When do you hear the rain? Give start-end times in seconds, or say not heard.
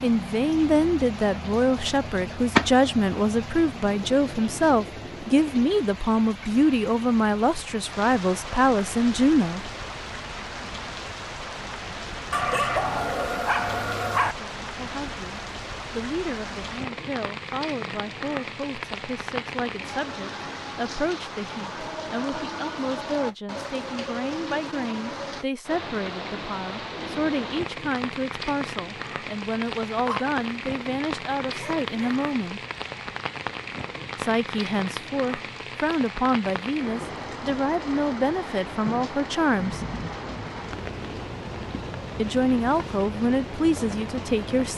0.0-44.7.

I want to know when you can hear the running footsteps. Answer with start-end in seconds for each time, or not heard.
not heard.